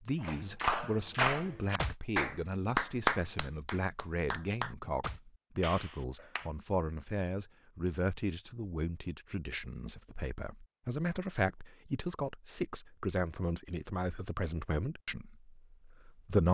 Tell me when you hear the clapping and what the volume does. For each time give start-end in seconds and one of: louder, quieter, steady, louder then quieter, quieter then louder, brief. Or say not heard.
0.2-6.5 quieter.